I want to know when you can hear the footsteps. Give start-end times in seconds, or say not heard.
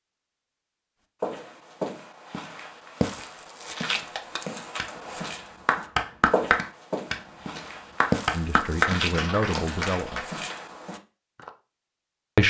1.2-11.5.